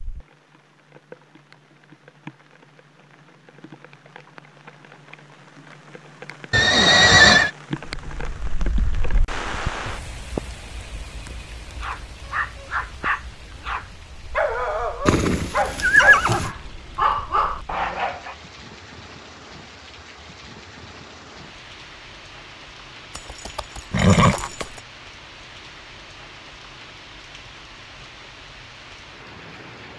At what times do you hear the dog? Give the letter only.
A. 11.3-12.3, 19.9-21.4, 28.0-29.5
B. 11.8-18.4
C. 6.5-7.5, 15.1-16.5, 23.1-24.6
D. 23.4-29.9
B.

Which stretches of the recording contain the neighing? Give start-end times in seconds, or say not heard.
6.5-7.5, 15.1-16.5, 23.1-24.6.